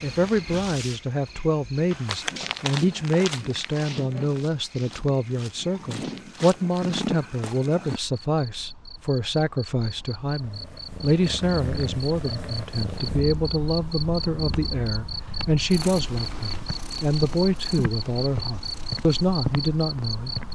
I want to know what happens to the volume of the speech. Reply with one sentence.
The volume of the speech stays about the same.